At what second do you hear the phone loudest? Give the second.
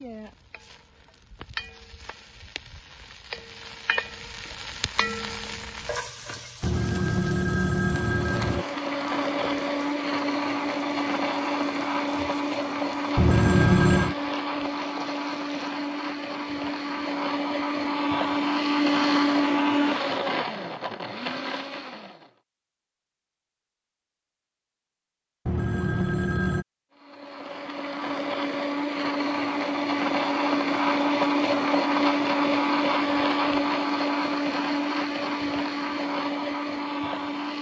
14 s.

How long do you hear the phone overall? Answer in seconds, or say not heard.
4 s.